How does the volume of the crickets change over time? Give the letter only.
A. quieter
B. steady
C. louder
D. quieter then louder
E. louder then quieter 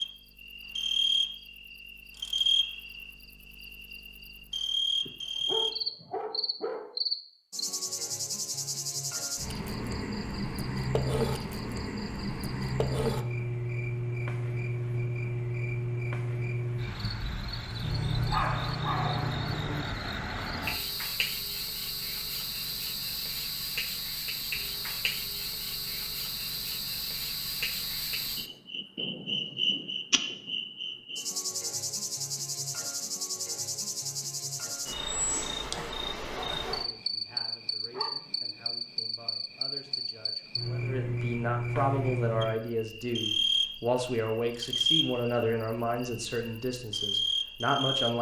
B.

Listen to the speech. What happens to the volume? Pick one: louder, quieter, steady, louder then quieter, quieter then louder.
louder.